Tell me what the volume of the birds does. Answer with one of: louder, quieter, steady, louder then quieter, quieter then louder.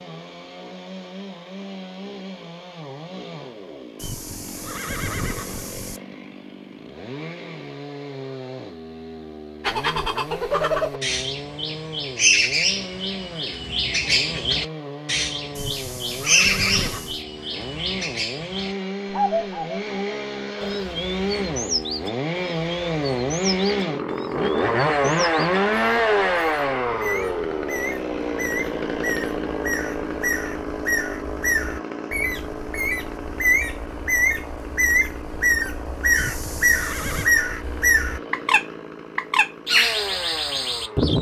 quieter then louder.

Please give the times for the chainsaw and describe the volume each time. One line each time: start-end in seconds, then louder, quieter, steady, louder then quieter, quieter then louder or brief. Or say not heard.
0.0-41.1 louder then quieter.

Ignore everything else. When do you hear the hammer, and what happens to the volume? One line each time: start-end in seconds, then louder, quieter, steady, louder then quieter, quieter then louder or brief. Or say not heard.
not heard.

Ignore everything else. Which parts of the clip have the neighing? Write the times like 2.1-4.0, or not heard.
4.0-6.0, 15.6-17.2, 36.1-37.4.